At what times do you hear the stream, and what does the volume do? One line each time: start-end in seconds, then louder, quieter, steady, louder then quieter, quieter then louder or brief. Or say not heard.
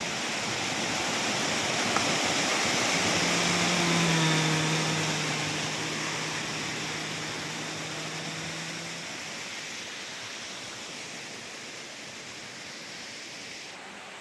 0.0-14.1 quieter.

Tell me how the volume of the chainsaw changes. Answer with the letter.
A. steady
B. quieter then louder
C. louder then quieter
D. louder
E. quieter
E.